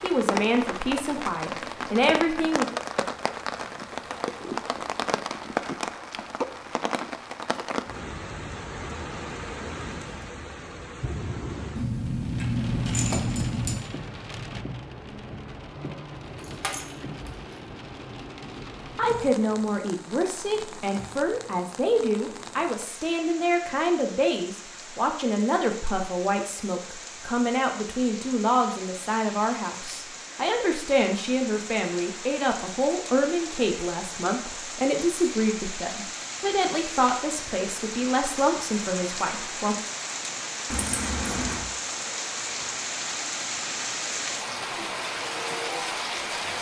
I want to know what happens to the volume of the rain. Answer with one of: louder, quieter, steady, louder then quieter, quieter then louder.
quieter then louder.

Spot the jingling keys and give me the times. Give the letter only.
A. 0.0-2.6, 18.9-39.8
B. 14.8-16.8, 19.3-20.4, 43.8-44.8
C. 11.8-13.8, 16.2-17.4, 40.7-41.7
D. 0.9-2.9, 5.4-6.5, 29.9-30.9
C.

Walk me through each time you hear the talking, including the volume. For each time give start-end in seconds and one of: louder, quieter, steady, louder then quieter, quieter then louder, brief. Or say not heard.
0.0-2.6 brief
18.9-39.8 steady.